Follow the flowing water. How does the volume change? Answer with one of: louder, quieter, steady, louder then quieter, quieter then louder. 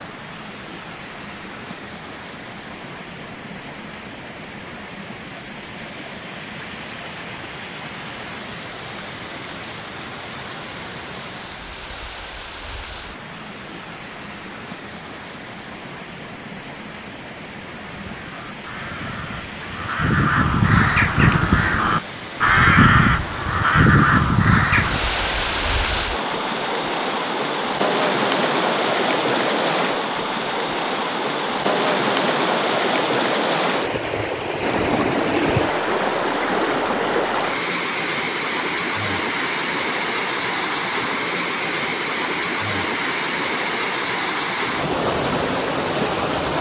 louder.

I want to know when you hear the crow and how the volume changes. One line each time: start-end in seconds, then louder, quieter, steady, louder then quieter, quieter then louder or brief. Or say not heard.
17.8-25.0 louder.